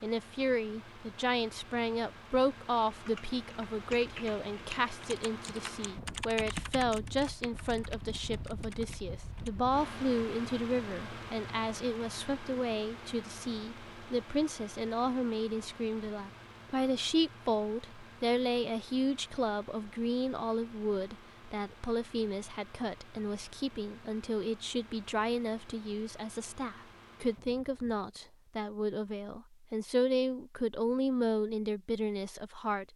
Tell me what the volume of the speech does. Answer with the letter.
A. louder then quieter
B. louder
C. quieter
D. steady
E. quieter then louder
D.